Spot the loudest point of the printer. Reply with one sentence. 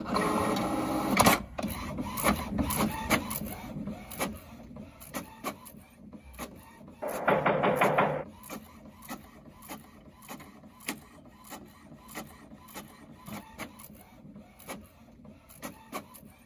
The volume of the printer peaks at 1 second.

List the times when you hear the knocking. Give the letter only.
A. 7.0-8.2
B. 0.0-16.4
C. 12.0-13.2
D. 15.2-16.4
A.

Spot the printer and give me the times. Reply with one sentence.
You can hear the printer from 0.0 to 16.4 s.